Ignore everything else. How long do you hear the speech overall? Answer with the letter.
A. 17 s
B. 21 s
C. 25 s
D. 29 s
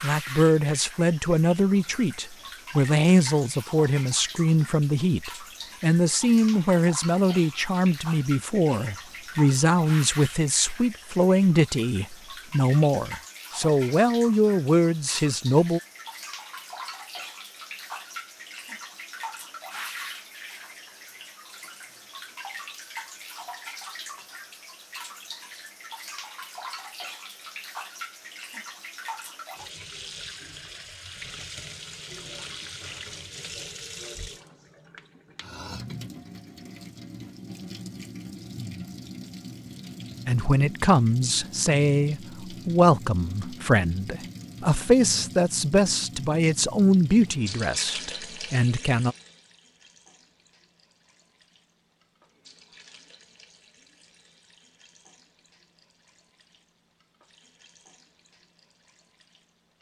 C.